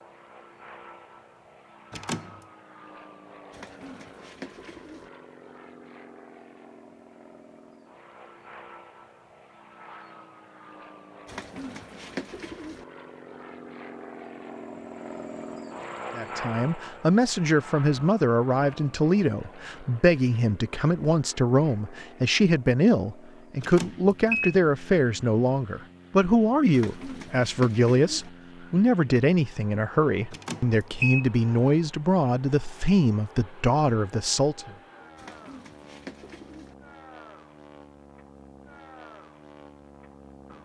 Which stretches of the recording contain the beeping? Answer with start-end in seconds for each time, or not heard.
1.9-2.4, 23.6-24.6, 30.3-31.2.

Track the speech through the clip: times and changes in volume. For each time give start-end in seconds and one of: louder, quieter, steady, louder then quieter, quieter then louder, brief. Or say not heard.
16.1-34.7 steady.